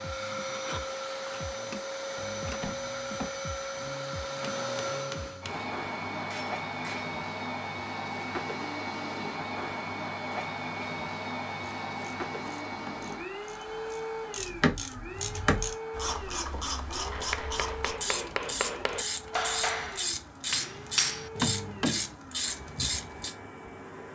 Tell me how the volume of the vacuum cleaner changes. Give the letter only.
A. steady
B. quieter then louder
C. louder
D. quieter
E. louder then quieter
D.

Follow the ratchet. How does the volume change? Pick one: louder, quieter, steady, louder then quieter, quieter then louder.
steady.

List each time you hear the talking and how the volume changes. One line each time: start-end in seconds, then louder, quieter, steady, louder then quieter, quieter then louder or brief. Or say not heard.
not heard.